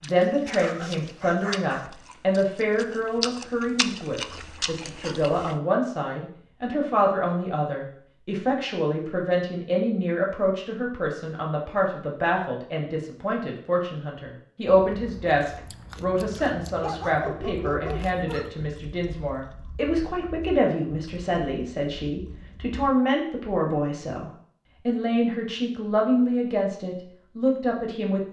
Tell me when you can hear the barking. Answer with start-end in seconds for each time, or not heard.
0.1-1.9, 16.8-18.7.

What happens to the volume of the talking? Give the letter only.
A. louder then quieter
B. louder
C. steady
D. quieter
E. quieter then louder
C.